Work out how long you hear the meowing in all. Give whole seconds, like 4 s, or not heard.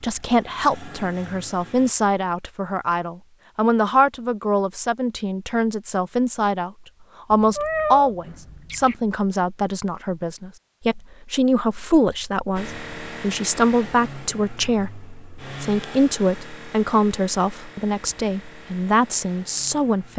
2 s.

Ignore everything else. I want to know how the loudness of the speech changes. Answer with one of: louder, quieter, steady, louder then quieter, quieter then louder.
steady.